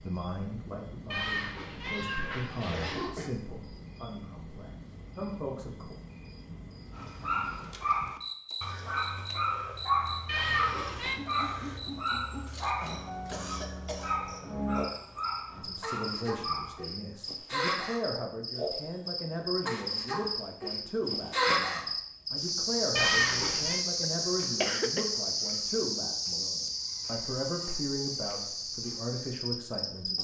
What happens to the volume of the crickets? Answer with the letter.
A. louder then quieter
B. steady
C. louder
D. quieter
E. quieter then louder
C.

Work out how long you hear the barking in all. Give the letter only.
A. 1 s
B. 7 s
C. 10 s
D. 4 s
C.